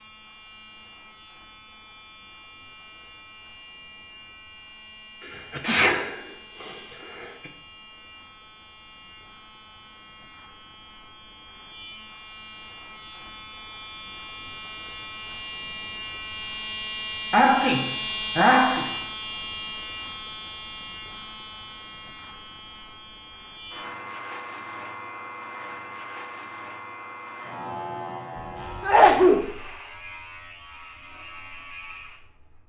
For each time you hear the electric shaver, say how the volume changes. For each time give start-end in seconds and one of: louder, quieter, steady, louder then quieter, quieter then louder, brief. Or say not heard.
0.0-32.6 louder then quieter.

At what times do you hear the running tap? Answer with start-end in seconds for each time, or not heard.
not heard.